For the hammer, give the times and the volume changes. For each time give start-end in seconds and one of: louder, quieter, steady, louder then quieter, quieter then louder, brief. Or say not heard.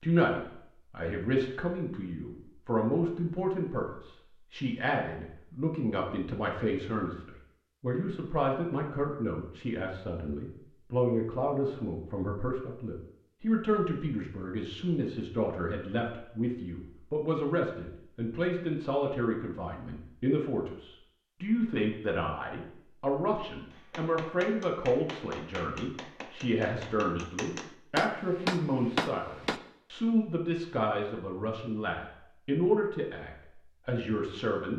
23.7-29.6 louder.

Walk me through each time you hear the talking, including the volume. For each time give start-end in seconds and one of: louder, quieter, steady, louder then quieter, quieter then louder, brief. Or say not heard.
0.0-34.7 steady.